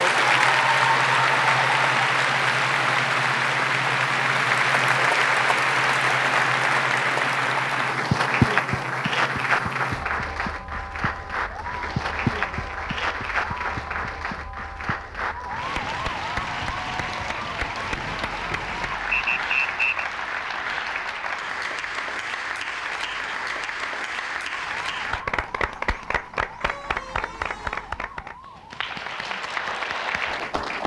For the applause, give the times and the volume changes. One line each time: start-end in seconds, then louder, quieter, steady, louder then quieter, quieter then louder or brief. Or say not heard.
0.0-30.8 quieter.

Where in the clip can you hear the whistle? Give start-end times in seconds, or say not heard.
19.1-20.1.